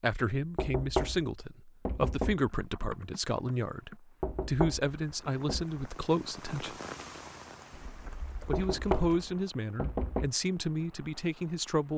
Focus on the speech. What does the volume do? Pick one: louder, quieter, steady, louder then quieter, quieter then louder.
steady.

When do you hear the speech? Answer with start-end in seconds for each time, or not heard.
0.0-6.8, 8.4-11.9.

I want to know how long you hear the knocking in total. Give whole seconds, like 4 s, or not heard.
5 s.